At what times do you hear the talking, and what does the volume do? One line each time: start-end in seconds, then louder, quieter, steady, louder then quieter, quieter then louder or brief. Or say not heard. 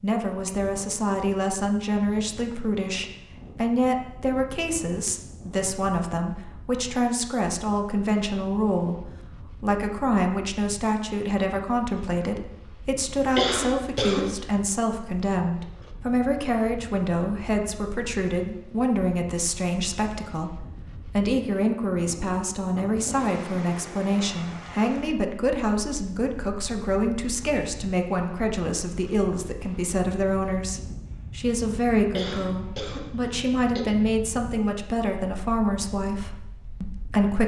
0.0-37.4 steady.